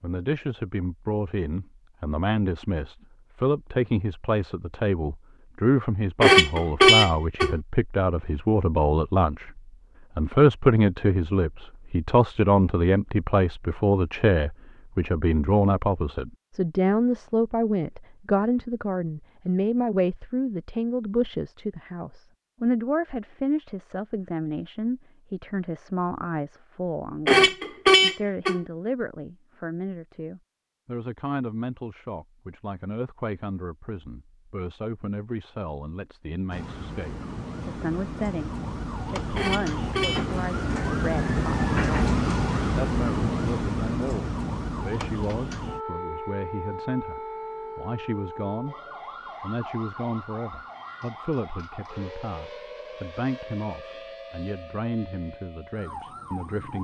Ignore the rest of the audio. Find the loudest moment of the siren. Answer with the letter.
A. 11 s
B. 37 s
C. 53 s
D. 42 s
D.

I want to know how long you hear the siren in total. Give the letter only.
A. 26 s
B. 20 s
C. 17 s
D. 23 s
B.